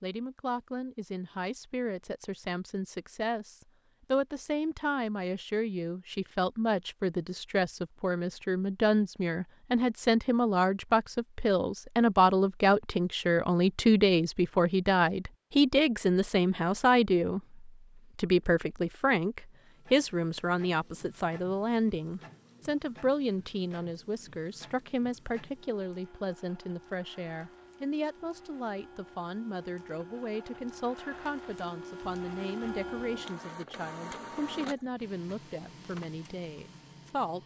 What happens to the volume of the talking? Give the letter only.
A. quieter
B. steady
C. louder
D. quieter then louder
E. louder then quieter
E.